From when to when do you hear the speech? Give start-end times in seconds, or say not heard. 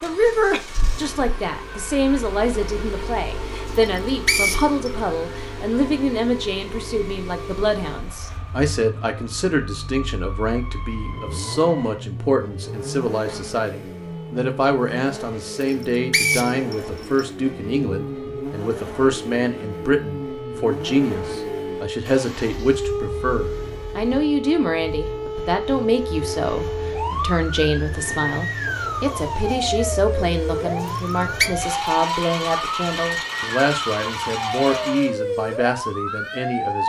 0.0-36.8.